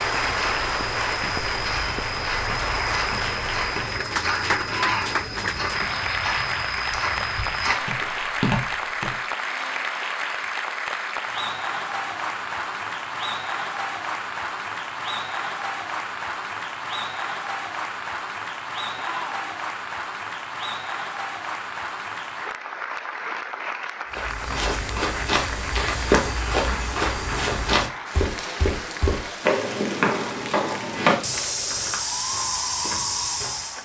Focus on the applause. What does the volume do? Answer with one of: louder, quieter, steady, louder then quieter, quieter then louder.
quieter.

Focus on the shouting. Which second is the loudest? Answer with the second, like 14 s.
5 s.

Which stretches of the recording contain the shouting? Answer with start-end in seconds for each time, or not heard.
4.7-5.2, 18.9-19.4.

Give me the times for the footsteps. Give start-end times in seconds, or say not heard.
0.0-9.2, 24.1-33.8.